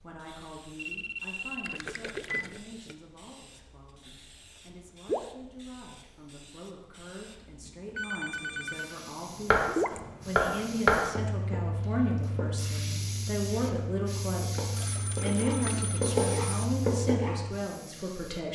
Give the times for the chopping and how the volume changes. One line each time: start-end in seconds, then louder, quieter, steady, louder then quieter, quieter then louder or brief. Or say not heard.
9.5-17.6 quieter then louder.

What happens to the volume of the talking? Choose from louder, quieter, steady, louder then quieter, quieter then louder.
louder.